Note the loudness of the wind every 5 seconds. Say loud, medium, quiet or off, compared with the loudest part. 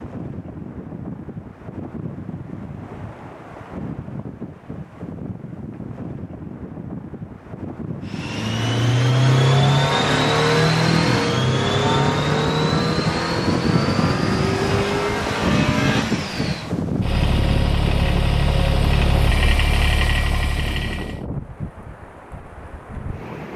medium, medium, loud, loud, medium.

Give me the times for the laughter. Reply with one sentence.
You can't hear the laughter here.